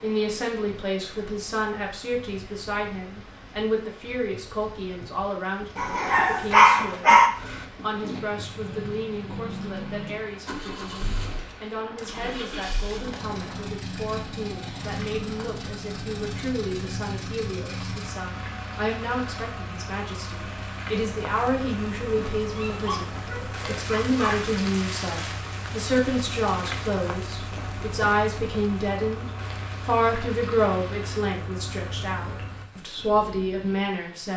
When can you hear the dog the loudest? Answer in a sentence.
The volume of the dog peaks at 7 seconds.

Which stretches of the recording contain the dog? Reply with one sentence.
You can hear the dog from 5.8 to 7.3 s and from 22.6 to 24.4 s.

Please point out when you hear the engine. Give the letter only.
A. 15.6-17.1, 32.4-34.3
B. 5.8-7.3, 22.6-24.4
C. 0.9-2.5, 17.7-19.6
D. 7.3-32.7
D.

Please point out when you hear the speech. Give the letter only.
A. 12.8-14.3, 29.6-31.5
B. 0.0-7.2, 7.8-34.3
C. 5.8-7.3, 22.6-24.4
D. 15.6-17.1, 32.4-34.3
B.